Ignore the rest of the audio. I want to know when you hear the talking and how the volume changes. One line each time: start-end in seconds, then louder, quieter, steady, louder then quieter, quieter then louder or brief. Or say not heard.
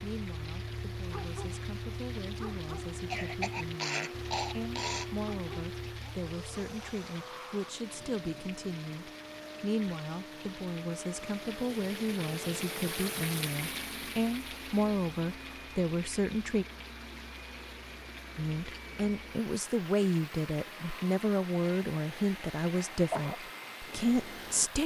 0.0-16.6 louder
18.4-24.8 steady.